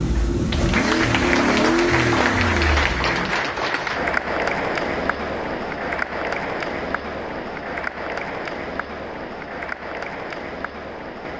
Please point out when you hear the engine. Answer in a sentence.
You can hear the engine from 0.0 to 3.4 s.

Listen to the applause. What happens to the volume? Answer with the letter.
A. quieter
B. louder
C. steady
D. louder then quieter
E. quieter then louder
A.